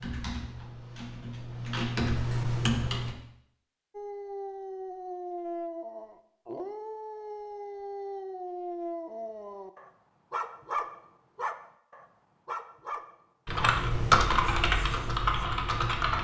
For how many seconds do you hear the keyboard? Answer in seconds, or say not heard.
6 s.